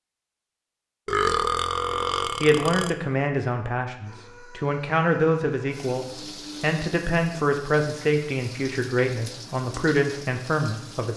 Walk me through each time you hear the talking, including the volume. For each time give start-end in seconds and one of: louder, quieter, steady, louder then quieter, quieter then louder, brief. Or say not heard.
1.9-11.1 steady.